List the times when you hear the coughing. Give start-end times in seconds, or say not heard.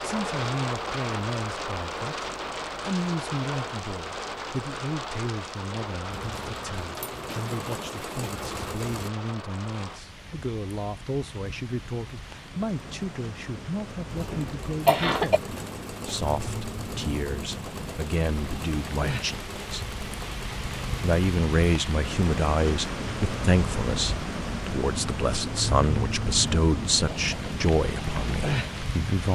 14.3-15.4.